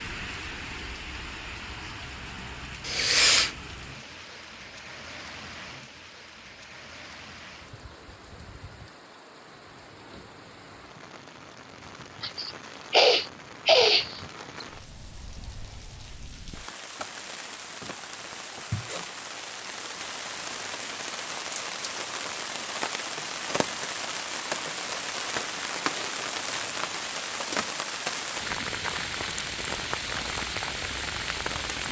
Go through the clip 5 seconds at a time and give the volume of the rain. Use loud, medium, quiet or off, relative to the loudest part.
medium, quiet, quiet, medium, loud, loud, loud.